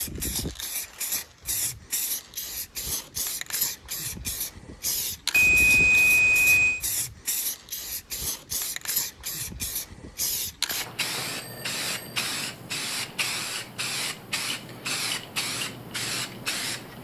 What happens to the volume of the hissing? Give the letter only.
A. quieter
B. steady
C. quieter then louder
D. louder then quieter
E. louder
B.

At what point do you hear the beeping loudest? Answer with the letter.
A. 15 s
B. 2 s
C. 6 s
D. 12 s
C.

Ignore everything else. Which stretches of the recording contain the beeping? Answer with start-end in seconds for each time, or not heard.
5.3-6.8, 11.2-12.2.